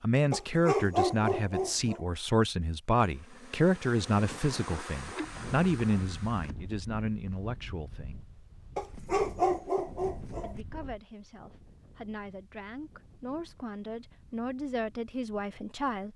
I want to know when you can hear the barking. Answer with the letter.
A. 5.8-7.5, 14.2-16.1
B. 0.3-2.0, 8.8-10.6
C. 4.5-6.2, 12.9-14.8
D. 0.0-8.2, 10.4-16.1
B.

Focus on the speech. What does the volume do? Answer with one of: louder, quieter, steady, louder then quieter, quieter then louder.
quieter then louder.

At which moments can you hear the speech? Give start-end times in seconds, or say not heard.
0.0-8.2, 10.4-16.1.